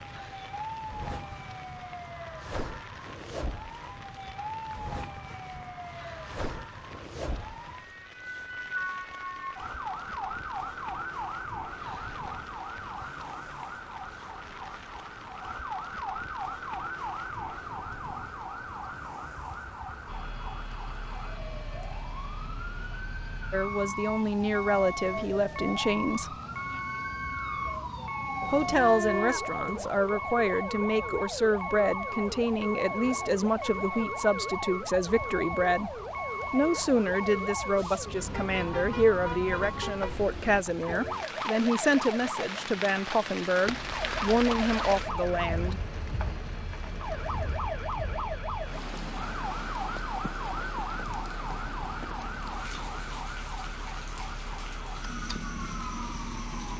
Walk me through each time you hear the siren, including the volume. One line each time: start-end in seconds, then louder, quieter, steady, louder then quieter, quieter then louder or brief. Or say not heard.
0.0-56.7 steady.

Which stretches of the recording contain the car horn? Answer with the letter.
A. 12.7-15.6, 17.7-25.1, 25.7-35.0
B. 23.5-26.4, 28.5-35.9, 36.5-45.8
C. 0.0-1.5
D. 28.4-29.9
D.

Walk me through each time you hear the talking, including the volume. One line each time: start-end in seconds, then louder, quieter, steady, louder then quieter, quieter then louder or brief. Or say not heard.
23.5-26.4 brief
28.5-35.9 steady
36.5-45.8 steady.